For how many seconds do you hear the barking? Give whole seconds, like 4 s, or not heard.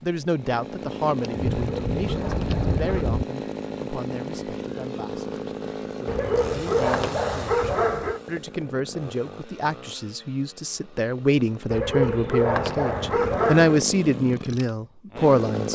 6 s.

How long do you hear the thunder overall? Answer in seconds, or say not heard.
2 s.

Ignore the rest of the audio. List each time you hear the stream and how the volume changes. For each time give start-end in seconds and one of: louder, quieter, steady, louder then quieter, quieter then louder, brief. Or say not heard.
not heard.